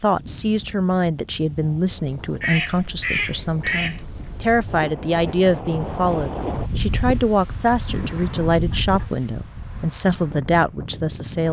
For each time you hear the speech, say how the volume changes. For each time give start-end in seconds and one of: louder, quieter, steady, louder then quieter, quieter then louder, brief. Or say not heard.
0.0-11.4 steady.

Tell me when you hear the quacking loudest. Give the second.
3 s.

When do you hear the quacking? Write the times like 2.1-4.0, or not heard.
2.4-4.0, 7.8-9.2.